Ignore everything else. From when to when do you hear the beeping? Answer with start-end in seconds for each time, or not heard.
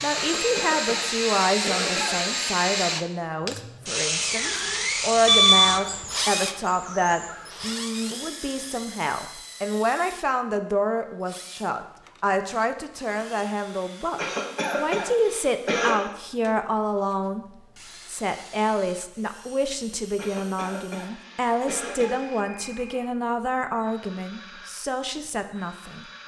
5.2-5.8.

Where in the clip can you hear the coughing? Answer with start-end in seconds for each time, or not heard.
0.1-2.4, 14.2-15.9, 20.1-22.2.